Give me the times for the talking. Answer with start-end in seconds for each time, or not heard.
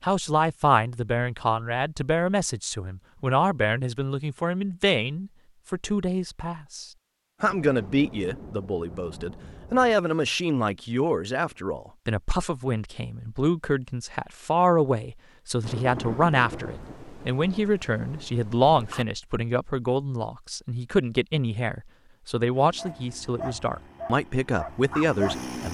0.0-25.6.